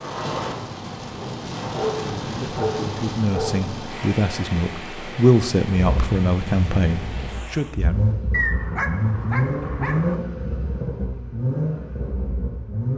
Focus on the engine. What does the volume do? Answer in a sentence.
The volume of the engine goes up.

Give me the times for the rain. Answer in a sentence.
The rain can be heard from 0.0 to 7.8 s.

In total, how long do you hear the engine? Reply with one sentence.
The engine can be heard for 7 seconds in total.